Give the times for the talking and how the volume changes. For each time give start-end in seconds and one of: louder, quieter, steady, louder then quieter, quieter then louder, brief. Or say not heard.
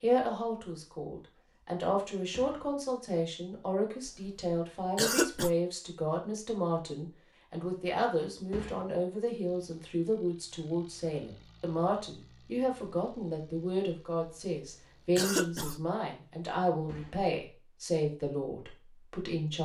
0.0-19.6 steady.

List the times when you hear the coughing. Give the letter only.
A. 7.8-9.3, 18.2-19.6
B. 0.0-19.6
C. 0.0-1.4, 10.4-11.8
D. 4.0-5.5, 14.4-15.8
D.